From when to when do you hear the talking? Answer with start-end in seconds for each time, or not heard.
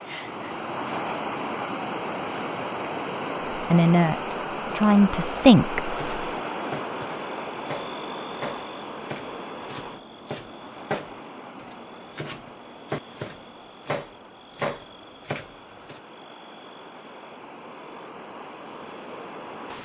3.7-6.0.